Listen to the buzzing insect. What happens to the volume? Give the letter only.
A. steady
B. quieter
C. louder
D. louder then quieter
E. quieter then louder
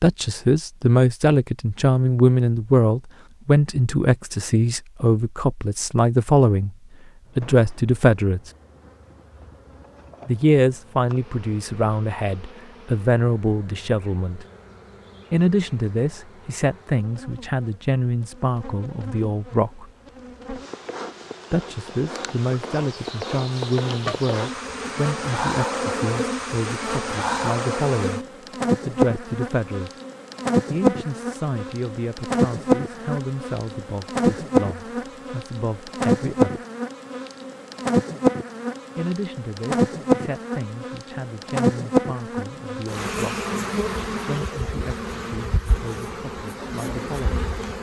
C.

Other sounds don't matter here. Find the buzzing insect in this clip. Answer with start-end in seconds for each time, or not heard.
7.2-47.7.